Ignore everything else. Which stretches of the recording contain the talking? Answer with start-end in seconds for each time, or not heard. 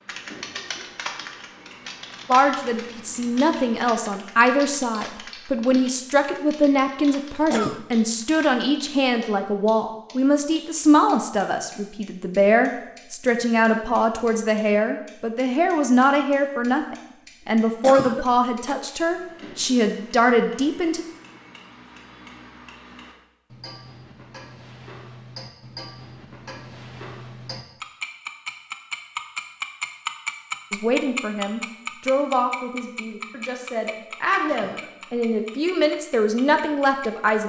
2.2-21.1, 30.7-37.4.